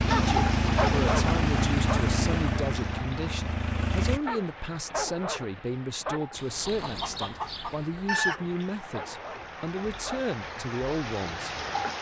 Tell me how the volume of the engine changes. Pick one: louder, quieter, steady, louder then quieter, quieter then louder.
quieter.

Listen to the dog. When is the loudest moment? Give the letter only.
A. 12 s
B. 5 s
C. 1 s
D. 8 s
C.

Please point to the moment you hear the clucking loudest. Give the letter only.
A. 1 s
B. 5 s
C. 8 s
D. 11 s
C.